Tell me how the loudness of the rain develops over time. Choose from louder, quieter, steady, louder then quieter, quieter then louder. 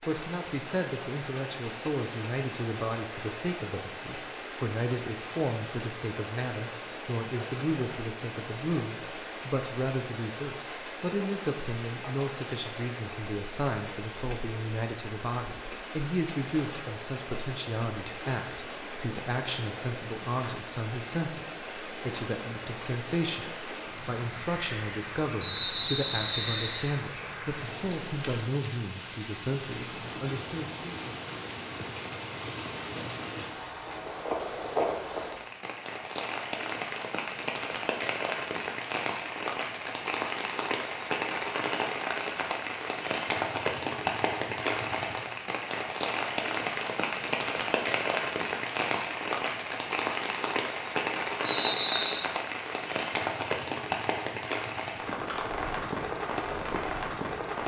louder.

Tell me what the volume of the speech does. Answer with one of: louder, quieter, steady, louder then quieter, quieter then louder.
steady.